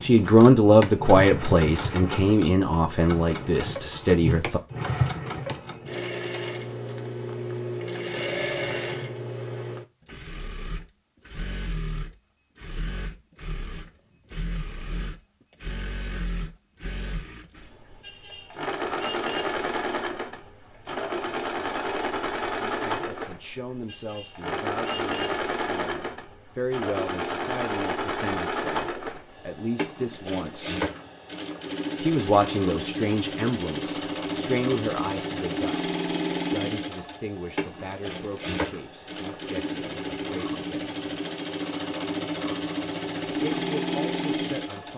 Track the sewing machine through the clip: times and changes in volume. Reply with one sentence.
The sewing machine can be heard from 0.0 to 44.9 s, getting quieter then louder.